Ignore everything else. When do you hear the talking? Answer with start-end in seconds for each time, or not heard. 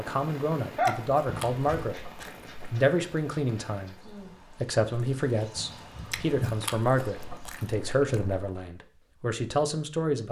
0.0-2.0, 2.7-10.2.